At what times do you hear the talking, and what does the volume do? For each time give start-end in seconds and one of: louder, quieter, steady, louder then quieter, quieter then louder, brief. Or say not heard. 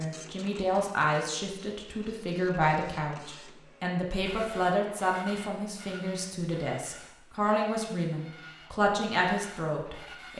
0.0-10.3 steady.